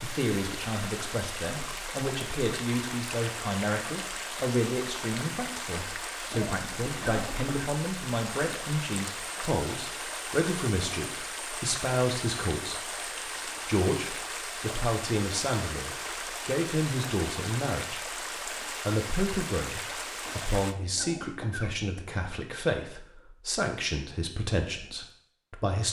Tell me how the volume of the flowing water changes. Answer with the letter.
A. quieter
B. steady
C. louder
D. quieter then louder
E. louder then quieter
B.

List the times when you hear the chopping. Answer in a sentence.
The chopping can't be heard in this clip.